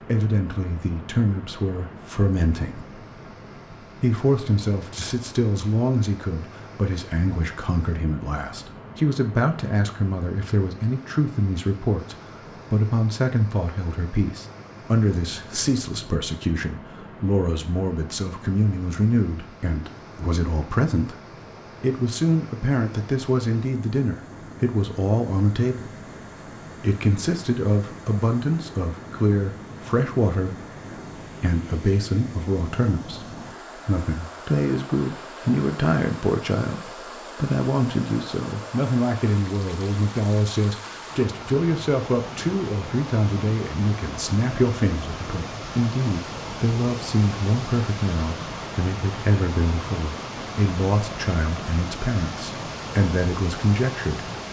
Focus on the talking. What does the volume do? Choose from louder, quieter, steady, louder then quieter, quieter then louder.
steady.